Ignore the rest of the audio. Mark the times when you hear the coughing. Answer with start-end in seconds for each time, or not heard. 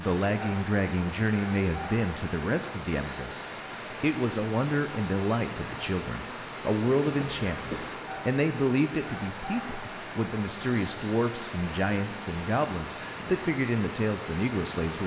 7.2-7.9.